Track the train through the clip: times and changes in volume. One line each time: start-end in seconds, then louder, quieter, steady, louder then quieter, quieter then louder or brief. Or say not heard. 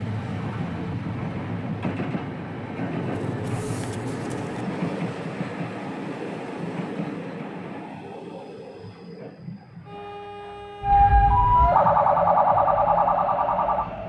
0.0-14.0 quieter.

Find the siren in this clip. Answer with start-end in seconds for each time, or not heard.
10.8-14.0.